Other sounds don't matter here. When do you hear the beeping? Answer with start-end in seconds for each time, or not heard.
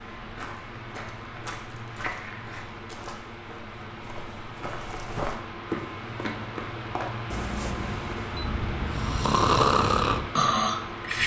7.3-8.4.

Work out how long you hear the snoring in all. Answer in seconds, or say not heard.
3 s.